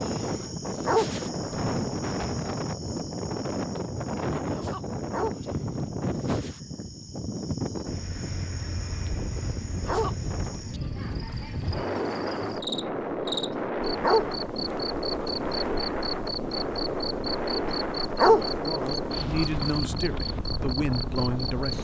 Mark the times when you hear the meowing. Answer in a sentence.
You can't hear the meowing here.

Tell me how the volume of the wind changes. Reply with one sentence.
The volume of the wind stays about the same.